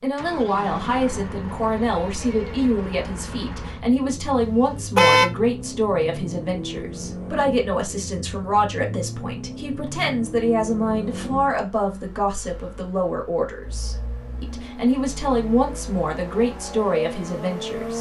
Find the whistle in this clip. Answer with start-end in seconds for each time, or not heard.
not heard.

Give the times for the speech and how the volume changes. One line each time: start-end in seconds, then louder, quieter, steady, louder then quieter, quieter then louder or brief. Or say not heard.
0.0-17.9 steady.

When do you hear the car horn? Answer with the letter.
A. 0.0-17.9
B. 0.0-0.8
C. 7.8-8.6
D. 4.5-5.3
D.